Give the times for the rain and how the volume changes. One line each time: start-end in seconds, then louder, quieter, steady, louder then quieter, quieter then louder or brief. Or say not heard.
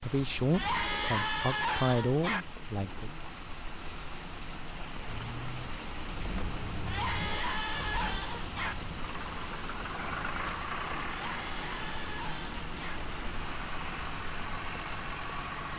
0.0-15.7 steady.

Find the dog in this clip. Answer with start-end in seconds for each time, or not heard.
0.5-2.5, 6.8-8.8, 11.2-13.0.